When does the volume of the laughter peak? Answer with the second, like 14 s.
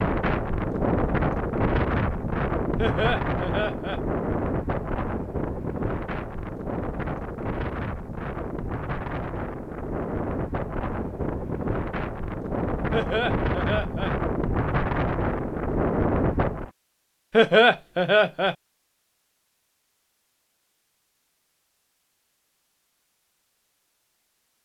18 s.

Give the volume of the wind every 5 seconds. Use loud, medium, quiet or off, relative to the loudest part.
loud, medium, loud, loud, off.